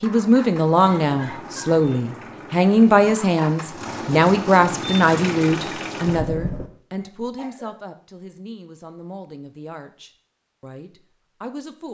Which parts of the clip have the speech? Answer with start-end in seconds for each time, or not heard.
0.0-11.8.